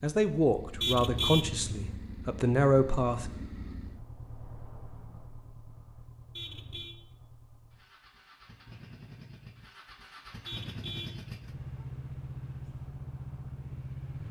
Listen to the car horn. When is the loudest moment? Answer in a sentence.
The volume of the car horn peaks at 1 second.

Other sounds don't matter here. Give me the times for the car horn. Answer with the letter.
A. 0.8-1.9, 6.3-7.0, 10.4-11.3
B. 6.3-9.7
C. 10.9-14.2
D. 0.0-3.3
A.